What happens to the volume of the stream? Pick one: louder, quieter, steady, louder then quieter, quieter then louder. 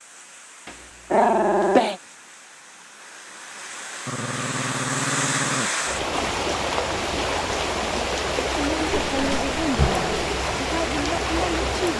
louder.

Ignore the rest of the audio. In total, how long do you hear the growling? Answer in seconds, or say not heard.
4 s.